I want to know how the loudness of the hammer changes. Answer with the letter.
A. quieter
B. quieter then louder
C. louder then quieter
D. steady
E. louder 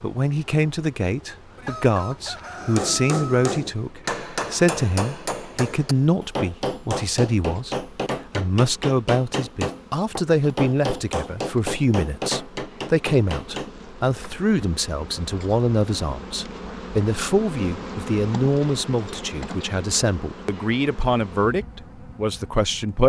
D.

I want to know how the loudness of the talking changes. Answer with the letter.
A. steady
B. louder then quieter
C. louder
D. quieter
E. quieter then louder
A.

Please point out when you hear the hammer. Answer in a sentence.
The hammer can be heard from 2.5 to 13.7 s.